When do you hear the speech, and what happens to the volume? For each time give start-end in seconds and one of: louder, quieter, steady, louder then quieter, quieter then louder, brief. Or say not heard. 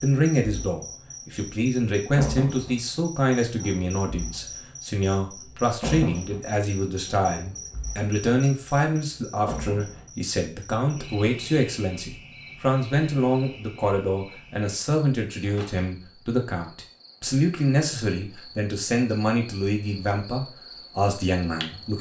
0.0-21.9 steady.